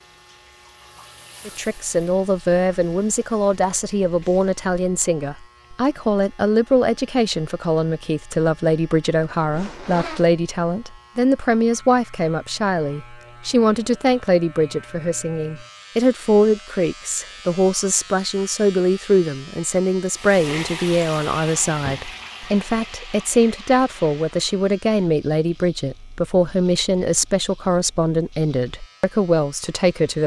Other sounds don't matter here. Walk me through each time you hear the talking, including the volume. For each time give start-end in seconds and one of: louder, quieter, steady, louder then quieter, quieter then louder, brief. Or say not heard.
1.4-30.2 steady.